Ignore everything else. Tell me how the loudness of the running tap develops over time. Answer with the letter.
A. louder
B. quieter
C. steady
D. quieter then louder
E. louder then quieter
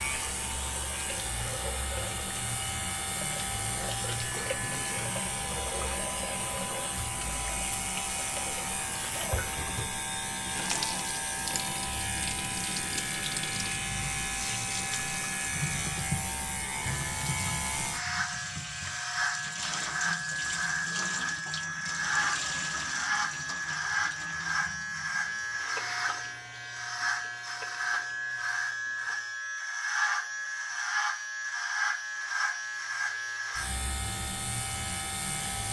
B.